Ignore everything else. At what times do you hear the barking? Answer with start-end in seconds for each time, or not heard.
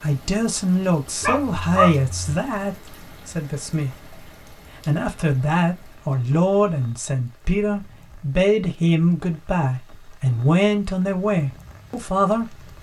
1.2-2.4.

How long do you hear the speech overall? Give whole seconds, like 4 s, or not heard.
12 s.